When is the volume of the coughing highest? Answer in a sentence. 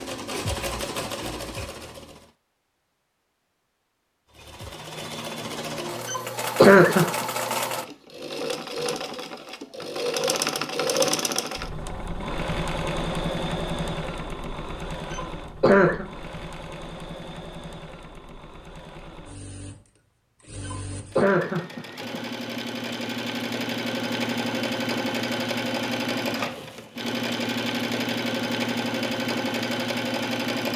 The volume of the coughing peaks at 7 seconds.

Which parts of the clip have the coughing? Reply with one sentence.
The coughing can be heard from 6.0 to 7.2 s, from 15.1 to 16.1 s and from 20.6 to 22.2 s.